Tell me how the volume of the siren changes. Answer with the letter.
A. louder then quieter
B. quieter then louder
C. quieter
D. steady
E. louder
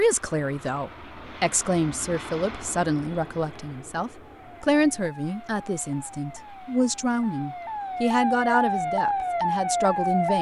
E.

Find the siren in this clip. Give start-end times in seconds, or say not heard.
4.3-10.3.